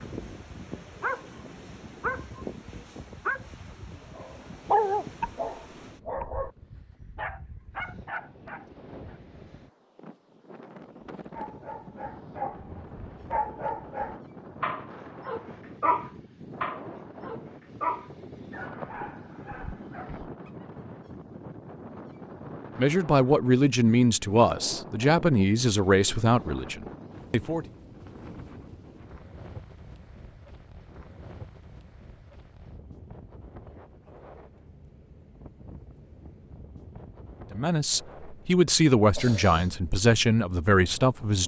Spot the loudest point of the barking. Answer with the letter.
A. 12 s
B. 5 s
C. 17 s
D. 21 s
B.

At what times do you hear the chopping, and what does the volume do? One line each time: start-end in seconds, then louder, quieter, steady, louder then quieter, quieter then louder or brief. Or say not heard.
not heard.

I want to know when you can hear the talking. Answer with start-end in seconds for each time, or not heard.
22.8-27.6, 37.5-41.4.